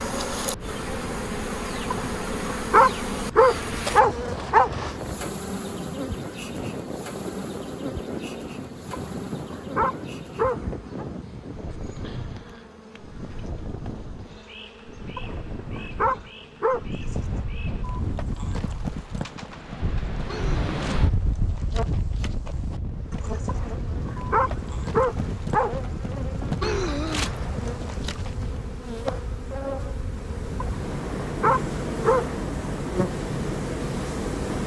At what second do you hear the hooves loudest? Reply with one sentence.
The volume of the hooves peaks at 27 seconds.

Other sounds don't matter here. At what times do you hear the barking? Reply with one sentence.
You can hear the barking from 1.9 to 4.7 s, from 8.9 to 11.1 s, from 15.2 to 16.8 s, from 23.4 to 25.7 s and from 30.6 to 32.2 s.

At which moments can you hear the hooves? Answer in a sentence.
You can hear the hooves from 17.0 to 28.5 s.